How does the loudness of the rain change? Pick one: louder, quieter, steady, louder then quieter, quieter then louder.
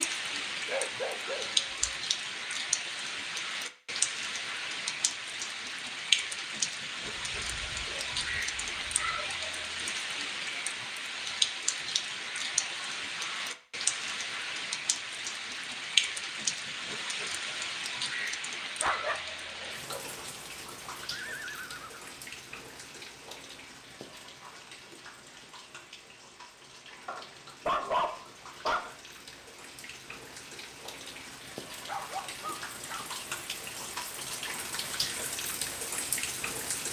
quieter then louder.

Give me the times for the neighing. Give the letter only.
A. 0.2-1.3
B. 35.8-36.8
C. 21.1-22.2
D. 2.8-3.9
C.